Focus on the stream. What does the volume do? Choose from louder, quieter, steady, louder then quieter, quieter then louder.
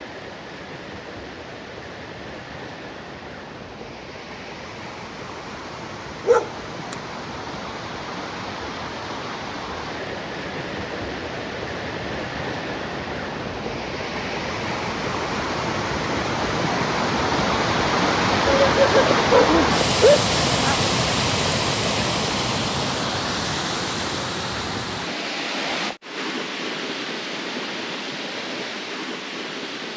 louder then quieter.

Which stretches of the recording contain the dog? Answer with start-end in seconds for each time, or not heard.
6.2-7.0, 18.4-20.8.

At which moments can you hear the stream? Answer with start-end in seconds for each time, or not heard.
0.0-29.9.